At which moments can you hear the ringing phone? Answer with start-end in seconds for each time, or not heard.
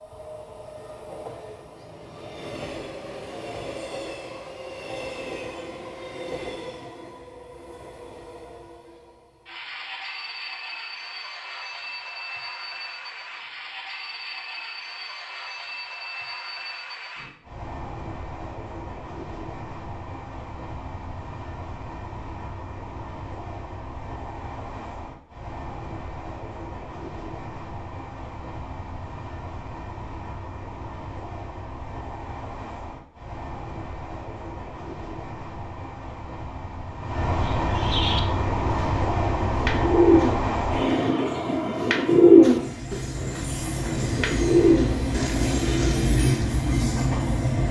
not heard.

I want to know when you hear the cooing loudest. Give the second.
42 s.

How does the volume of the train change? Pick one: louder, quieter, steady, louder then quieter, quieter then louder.
louder.